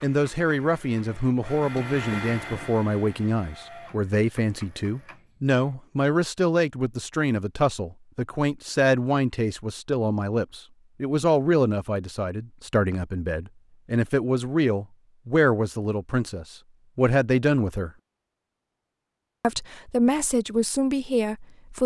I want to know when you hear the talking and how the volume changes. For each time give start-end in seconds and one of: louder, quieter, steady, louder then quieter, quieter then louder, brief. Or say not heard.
0.0-17.9 steady
19.4-21.8 brief.